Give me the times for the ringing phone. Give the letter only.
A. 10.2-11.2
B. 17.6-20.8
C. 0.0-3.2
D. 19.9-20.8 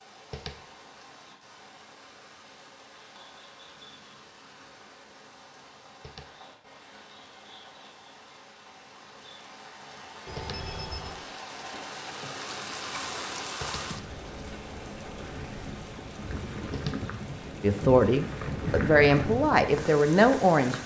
A.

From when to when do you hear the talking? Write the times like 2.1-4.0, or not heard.
17.6-20.8.